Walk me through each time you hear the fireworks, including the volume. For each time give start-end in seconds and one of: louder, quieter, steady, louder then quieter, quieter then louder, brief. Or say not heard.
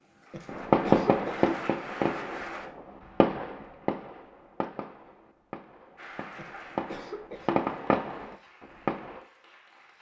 0.5-9.2 quieter then louder.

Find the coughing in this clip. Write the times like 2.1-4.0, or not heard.
0.3-1.6, 6.3-7.6.